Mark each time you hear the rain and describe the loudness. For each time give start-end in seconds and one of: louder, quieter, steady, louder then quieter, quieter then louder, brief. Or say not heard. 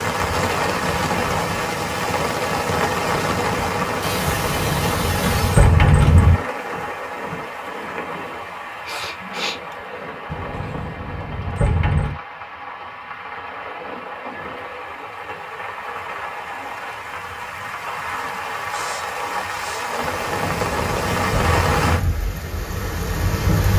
0.0-23.7 quieter then louder.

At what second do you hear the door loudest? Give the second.
6 s.